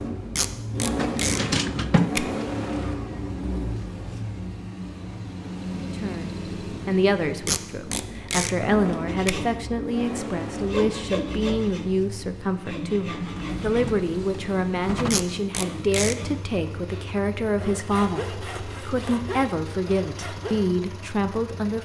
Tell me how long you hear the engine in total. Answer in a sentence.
The engine can be heard for 22 seconds in total.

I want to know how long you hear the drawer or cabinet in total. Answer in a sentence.
You can hear the drawer or cabinet for 4 seconds altogether.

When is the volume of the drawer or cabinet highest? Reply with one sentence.
The loudest moment of the drawer or cabinet is at 2 seconds.